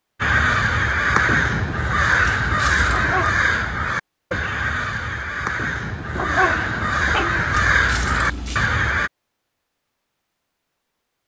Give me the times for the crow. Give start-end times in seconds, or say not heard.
0.2-9.1.